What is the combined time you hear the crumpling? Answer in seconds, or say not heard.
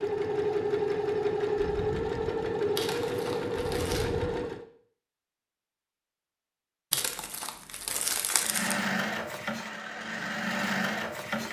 3 s.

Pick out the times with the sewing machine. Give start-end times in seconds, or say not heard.
0.0-4.7, 8.4-11.4.